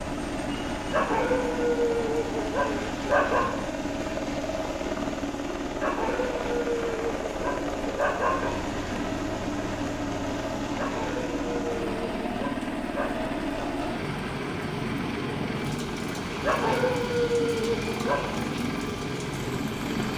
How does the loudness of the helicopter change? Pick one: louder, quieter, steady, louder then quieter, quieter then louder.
steady.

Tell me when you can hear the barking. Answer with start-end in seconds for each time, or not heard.
0.9-3.5, 5.8-8.6, 10.8-13.1, 16.4-18.2.